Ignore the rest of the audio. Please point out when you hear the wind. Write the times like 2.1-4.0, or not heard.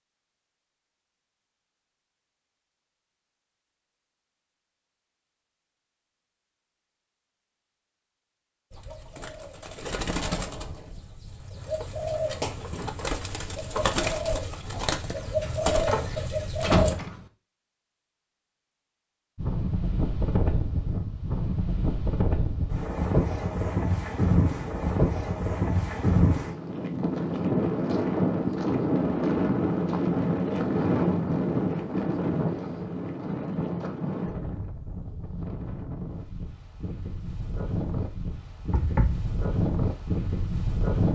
19.4-41.1.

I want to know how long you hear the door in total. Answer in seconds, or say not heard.
2 s.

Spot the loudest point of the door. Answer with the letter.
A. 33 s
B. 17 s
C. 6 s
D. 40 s
B.